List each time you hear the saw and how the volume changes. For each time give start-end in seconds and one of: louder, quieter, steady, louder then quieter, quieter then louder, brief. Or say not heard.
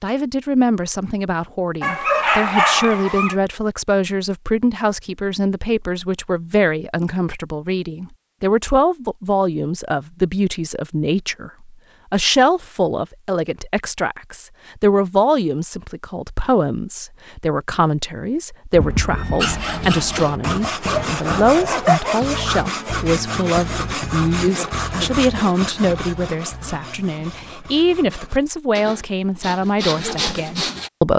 19.4-30.9 quieter then louder.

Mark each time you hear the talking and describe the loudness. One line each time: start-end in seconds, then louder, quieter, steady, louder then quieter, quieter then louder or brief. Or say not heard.
0.0-31.1 steady.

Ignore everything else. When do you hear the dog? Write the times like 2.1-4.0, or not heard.
1.8-3.4, 20.9-22.6.